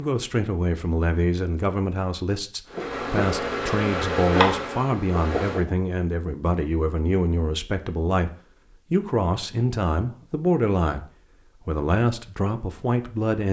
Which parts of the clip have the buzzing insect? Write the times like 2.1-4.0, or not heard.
2.7-5.7.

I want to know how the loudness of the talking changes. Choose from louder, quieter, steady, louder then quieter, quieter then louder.
steady.